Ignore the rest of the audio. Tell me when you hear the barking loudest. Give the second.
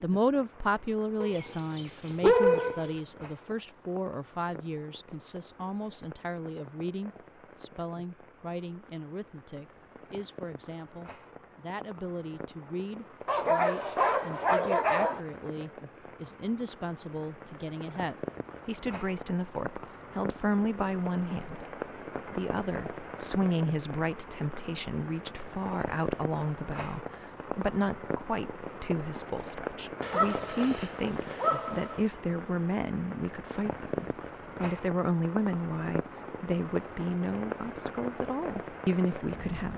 2 s.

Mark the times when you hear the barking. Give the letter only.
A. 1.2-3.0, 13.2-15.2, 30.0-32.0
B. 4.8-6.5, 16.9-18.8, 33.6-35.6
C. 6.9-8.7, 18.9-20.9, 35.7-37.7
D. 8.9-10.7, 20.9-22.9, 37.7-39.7
A.